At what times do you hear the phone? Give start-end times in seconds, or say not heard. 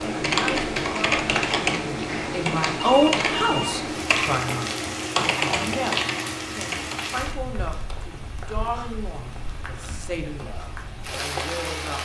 2.8-3.8.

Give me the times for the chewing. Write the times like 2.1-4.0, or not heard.
not heard.